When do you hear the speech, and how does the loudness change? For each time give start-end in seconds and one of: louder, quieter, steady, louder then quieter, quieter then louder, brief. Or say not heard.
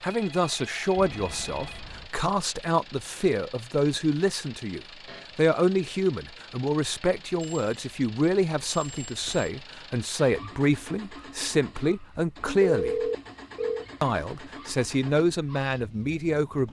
0.0-13.1 steady
14.0-16.6 brief.